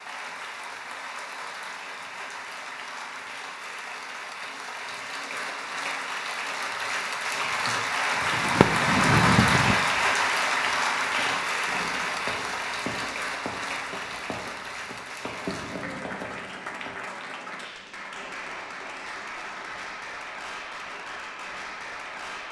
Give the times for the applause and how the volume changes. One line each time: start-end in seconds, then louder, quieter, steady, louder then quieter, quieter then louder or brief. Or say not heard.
0.0-22.4 louder then quieter.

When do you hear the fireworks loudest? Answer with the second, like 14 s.
9 s.